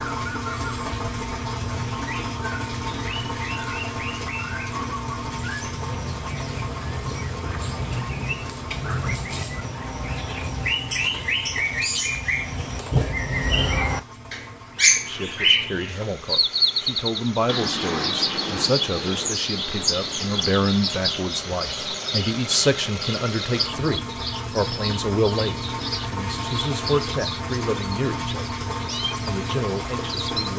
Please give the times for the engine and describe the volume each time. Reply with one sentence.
You can hear the engine from 0.0 to 30.5 s, getting quieter then louder.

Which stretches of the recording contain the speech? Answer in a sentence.
You can hear the speech from 15.1 to 28.4 s and from 29.2 to 30.5 s.